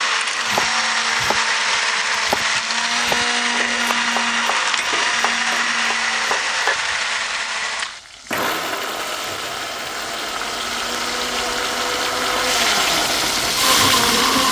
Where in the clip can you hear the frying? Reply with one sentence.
The frying can be heard from 3.4 to 14.4 s.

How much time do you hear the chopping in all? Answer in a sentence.
The chopping can be heard for 6 seconds in total.